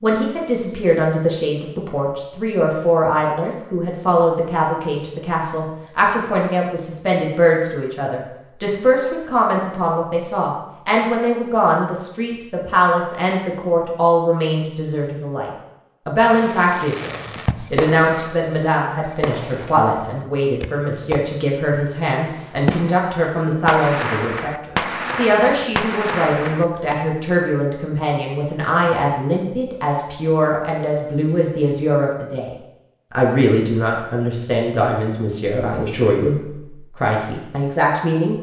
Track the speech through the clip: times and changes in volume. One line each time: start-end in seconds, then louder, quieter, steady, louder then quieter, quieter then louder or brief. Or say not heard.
0.0-32.5 steady
33.1-38.3 steady.